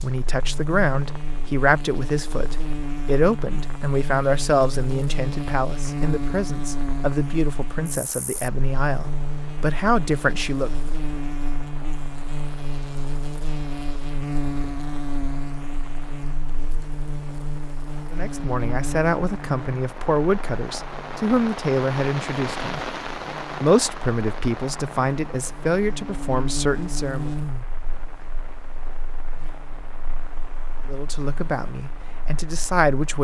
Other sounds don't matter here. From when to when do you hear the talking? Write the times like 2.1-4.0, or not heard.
0.0-10.7, 18.1-22.8, 23.6-27.3, 30.9-33.1.